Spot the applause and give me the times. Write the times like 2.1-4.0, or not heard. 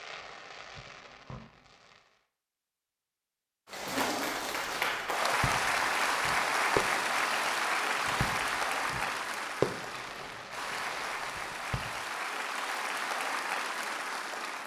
3.6-14.6.